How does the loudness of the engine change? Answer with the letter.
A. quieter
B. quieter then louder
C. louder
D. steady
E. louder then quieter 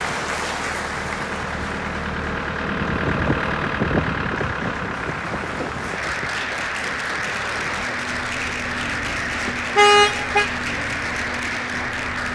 E.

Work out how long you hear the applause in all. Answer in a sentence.
You can hear the applause for 12 seconds altogether.